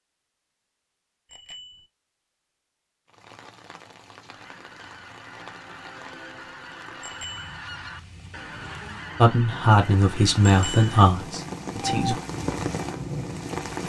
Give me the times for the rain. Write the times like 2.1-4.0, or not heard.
3.0-13.8.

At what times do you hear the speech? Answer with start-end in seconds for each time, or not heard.
9.2-12.2.